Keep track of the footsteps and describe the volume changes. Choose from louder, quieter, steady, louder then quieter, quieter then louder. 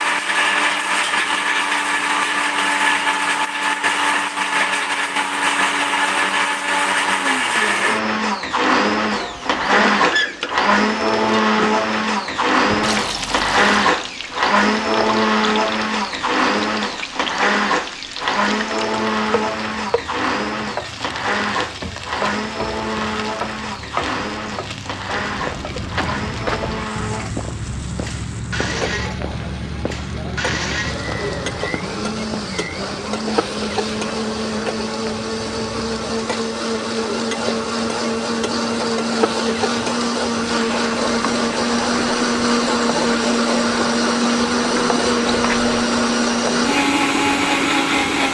quieter.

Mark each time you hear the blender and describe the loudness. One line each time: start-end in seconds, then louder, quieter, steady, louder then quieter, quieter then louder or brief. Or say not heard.
0.0-48.2 quieter then louder.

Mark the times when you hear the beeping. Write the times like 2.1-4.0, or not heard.
not heard.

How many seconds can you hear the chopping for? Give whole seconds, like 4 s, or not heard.
not heard.